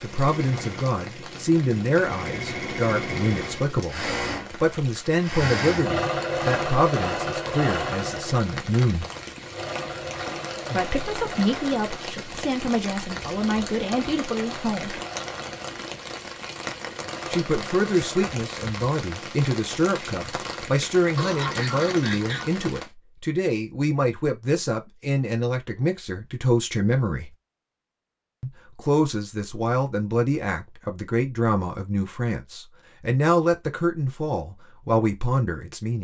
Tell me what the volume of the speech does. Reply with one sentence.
The loudness of the speech stays about the same.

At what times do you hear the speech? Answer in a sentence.
You can hear the speech from 0.0 to 9.1 s, from 10.7 to 15.0 s, from 17.3 to 27.3 s and from 28.4 to 35.9 s.